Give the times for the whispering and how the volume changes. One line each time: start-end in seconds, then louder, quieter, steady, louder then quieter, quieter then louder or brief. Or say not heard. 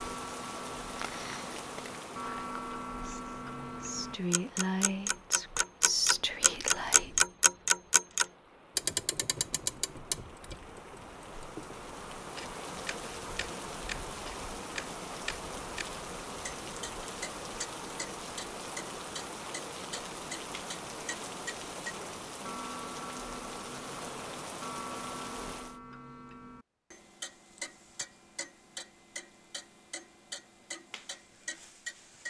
2.2-7.2 louder.